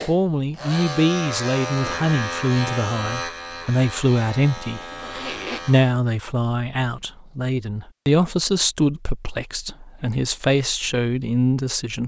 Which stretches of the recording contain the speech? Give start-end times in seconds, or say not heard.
0.1-4.8, 5.7-12.0.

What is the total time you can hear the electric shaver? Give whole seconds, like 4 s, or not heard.
6 s.